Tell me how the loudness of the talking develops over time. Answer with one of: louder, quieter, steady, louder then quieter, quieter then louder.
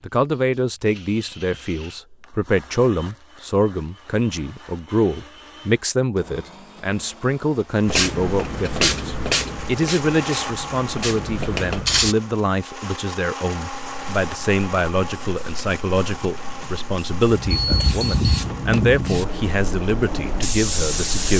steady.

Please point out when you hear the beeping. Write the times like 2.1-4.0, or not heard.
17.5-18.5.